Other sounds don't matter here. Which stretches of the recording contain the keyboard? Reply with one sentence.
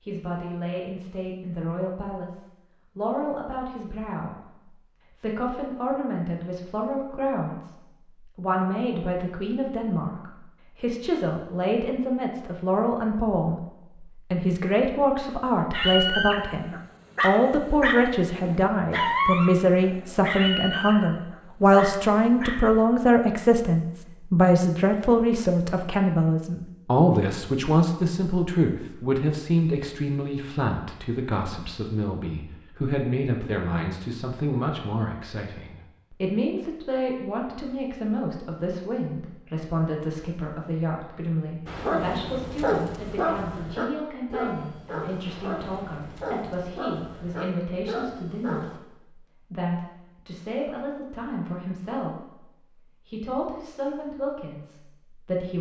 The keyboard can't be heard in this clip.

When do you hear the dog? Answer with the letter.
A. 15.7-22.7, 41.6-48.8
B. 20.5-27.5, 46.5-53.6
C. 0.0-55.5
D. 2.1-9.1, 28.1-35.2
A.